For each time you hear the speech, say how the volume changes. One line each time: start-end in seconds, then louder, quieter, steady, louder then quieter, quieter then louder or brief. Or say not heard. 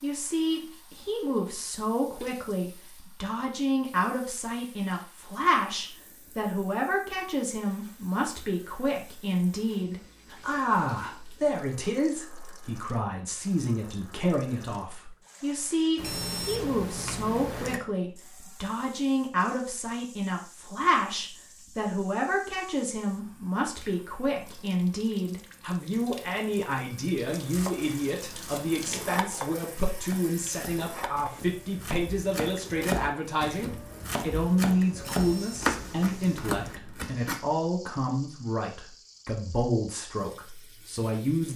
0.0-41.5 steady.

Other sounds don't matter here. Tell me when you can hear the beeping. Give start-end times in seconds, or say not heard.
15.9-17.8, 35.0-36.8.